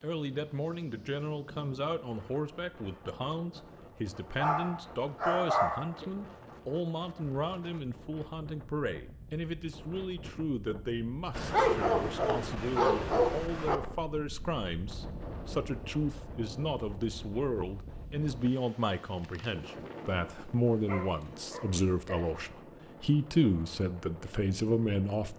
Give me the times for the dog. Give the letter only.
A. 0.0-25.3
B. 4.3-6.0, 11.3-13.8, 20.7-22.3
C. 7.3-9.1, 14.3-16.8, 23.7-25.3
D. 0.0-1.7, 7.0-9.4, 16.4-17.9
B.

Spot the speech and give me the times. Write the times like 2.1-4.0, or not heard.
0.0-25.3.